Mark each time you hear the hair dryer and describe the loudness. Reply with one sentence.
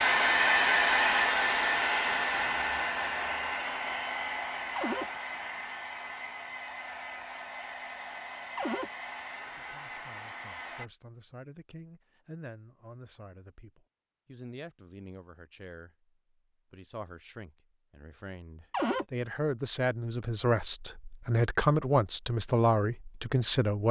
You can hear the hair dryer from 0.0 to 10.9 s, getting quieter.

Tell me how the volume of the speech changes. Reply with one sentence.
The loudness of the speech goes up.